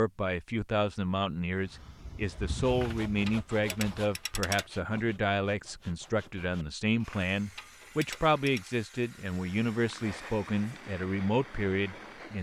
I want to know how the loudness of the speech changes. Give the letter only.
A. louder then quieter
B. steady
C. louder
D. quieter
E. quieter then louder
B.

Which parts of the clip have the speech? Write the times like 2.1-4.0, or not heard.
0.0-12.3.